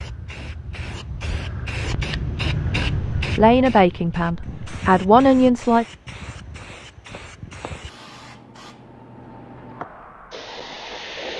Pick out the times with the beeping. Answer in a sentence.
The beeping can't be heard in this clip.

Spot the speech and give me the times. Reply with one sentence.
You can hear the speech from 3.2 to 5.8 s.